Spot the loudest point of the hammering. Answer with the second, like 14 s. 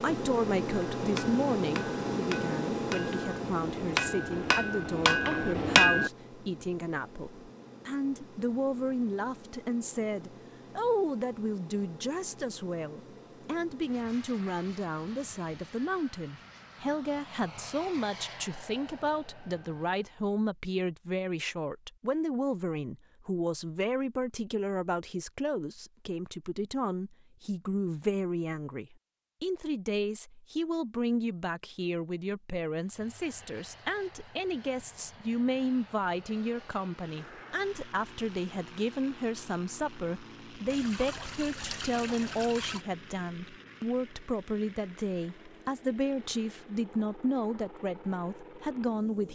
6 s.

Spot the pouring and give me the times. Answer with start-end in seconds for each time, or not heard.
40.7-42.9.